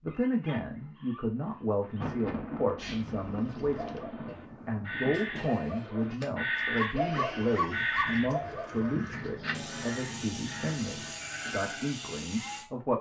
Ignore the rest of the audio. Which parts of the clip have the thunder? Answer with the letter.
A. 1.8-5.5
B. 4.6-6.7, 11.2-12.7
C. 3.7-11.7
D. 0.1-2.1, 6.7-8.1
A.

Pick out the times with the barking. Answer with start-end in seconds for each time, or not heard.
0.1-2.1, 6.7-8.1.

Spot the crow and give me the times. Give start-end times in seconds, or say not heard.
3.7-11.7.